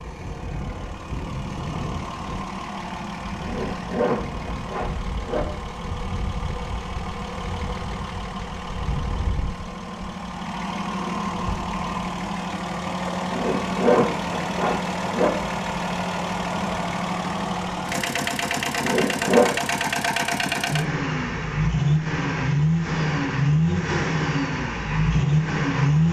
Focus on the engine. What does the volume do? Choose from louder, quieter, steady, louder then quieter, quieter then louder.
louder.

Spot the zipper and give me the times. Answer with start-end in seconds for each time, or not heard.
3.4-5.5, 13.3-15.3, 18.8-19.5.